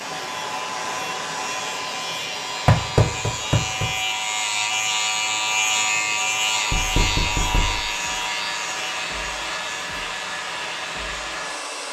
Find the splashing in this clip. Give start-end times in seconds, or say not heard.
not heard.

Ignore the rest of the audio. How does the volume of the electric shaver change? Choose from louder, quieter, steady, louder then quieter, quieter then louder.
louder then quieter.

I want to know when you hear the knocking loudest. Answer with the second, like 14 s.
3 s.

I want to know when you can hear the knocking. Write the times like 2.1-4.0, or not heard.
2.6-4.0, 6.7-7.9.